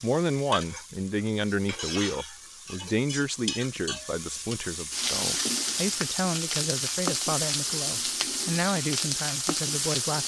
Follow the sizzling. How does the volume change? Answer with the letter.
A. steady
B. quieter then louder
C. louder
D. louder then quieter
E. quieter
C.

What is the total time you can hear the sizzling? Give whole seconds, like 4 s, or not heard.
10 s.